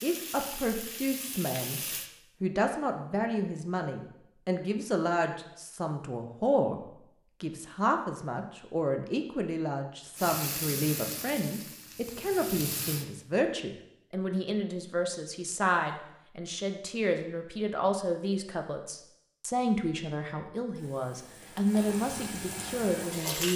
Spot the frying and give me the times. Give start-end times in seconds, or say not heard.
0.0-2.1, 10.2-13.1, 20.8-23.5.